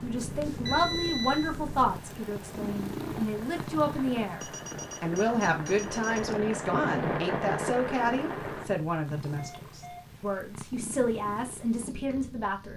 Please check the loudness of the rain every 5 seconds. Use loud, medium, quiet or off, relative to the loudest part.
medium, loud, off.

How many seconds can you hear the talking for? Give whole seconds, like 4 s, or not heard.
13 s.